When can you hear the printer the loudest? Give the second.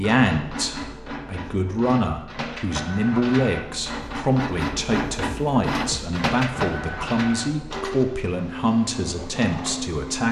6 s.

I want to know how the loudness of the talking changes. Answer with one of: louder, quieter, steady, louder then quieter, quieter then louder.
steady.